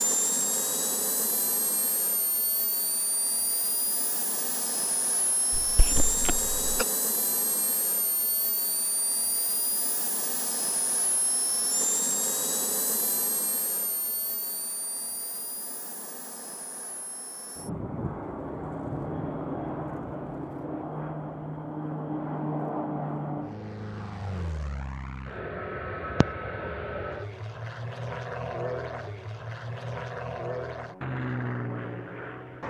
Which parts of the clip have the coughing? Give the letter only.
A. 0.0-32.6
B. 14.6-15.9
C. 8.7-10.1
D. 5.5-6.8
D.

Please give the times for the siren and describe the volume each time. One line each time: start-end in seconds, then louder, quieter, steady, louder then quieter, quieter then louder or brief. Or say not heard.
not heard.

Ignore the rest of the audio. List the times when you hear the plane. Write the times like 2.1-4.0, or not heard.
0.0-32.6.